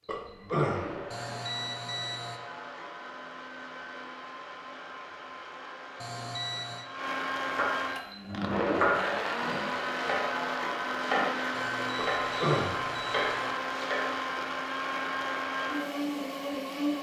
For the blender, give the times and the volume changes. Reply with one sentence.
The blender can be heard from 0.0 to 16.9 s, getting louder.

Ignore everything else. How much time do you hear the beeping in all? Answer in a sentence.
The beeping can be heard for 4 seconds in total.